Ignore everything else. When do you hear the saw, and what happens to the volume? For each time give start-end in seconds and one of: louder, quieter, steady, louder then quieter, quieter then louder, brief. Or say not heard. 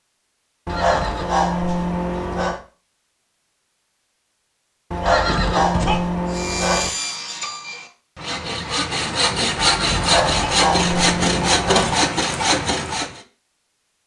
6.3-13.2 louder.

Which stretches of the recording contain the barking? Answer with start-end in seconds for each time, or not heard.
0.7-2.6, 4.9-6.9, 9.9-11.9.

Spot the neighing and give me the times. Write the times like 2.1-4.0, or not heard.
0.7-1.4, 5.0-6.0, 9.6-10.6.